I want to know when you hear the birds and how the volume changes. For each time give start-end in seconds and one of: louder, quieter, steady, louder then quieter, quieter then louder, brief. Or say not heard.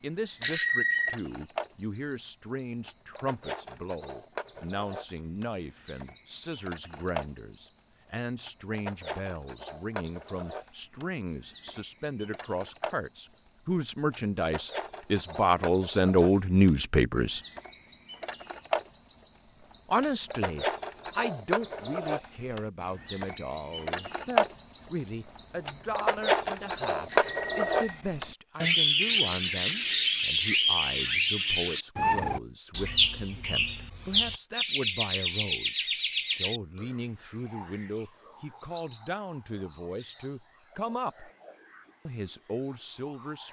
0.0-43.4 louder then quieter.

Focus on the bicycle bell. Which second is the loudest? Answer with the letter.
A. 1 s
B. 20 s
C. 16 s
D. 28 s
A.